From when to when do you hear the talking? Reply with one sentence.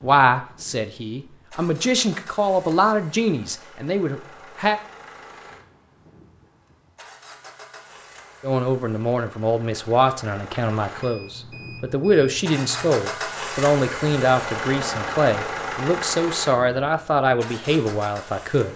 You can hear the talking from 0.0 to 4.8 s and from 8.4 to 18.7 s.